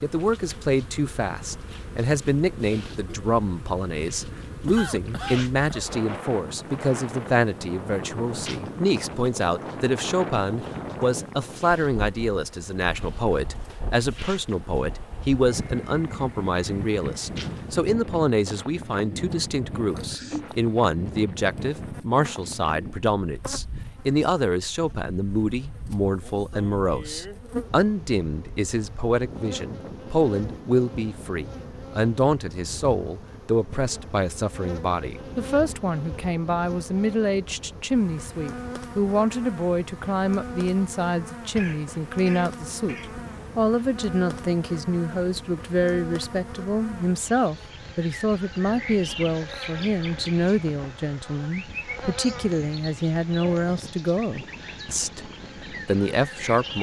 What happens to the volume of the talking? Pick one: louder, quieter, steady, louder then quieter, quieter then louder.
steady.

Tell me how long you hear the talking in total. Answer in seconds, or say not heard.
57 s.